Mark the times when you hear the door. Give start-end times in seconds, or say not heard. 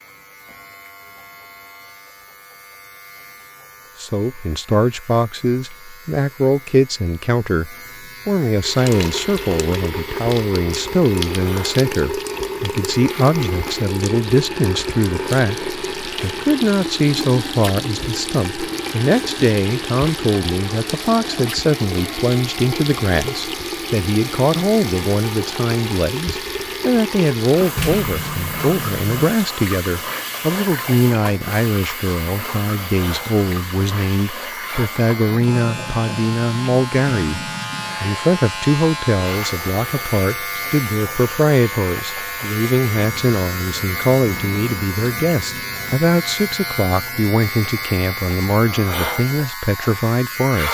27.8-29.1.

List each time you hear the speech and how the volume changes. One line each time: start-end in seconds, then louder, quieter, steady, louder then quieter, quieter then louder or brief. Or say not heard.
4.0-50.6 steady.